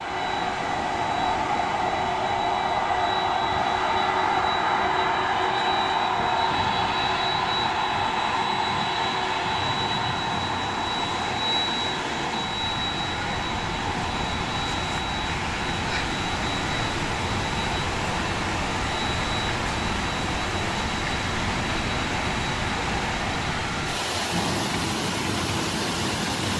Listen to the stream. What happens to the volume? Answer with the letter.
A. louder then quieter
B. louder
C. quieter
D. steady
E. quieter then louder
B.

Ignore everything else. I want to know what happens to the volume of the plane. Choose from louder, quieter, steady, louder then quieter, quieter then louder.
quieter.